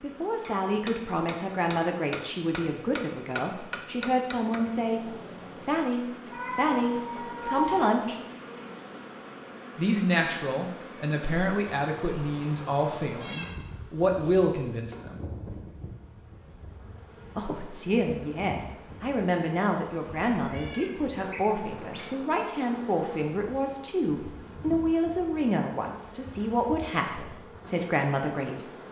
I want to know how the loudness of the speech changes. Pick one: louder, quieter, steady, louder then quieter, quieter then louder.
steady.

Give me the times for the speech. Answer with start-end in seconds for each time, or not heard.
0.0-8.2, 9.8-15.2, 17.4-28.6.